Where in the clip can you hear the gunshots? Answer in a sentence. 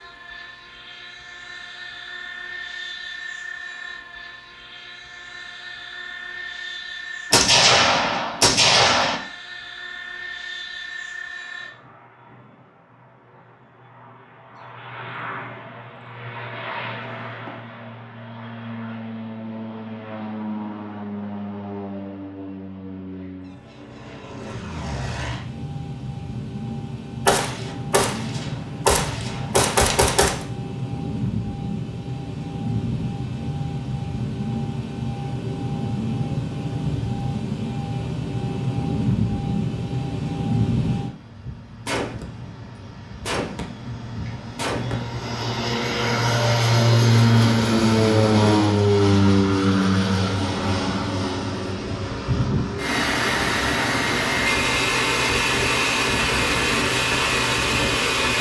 You can hear the gunshots from 7.3 to 9.2 s, from 27.2 to 30.4 s and from 41.9 to 45.0 s.